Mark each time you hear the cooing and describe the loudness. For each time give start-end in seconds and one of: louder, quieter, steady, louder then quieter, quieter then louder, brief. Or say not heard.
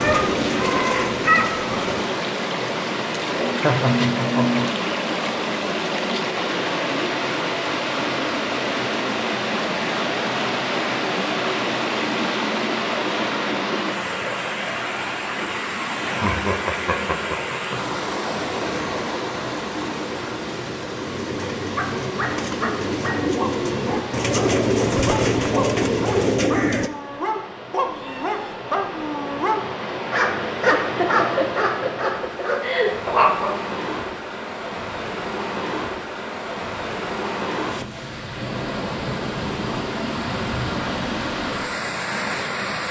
0.0-2.0 brief
18.4-26.9 louder.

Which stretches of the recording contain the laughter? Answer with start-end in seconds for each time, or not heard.
3.4-4.9, 16.1-17.8, 30.7-33.0.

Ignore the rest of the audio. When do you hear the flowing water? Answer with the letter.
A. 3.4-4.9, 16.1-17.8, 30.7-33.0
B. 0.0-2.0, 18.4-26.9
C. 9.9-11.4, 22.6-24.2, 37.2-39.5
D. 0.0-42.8
D.